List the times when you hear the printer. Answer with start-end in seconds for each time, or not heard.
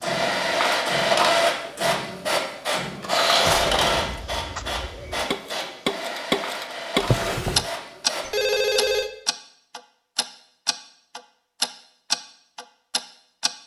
0.0-8.4.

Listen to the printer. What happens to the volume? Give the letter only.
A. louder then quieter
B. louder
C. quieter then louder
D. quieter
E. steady
D.